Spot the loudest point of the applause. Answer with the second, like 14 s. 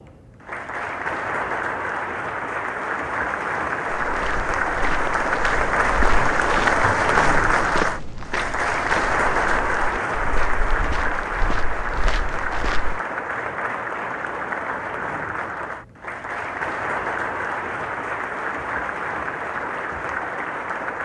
7 s.